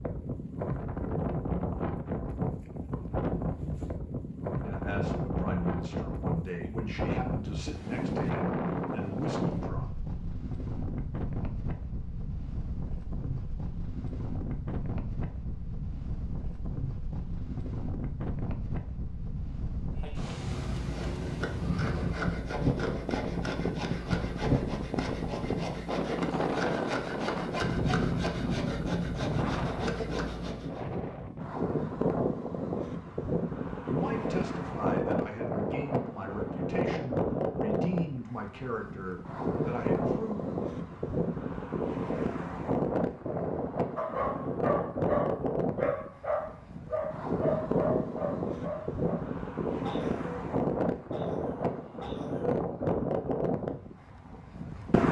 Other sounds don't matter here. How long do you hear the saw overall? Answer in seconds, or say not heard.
11 s.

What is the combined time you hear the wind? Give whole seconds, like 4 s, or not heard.
55 s.